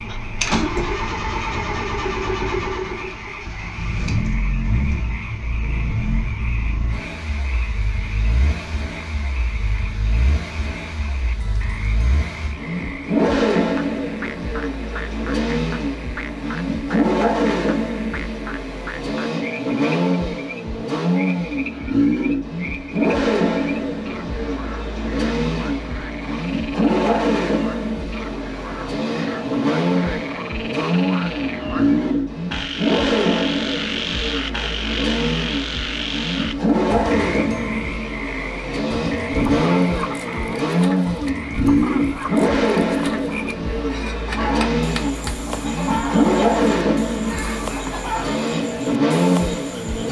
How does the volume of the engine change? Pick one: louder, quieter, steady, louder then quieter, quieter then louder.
louder.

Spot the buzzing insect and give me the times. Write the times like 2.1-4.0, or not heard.
not heard.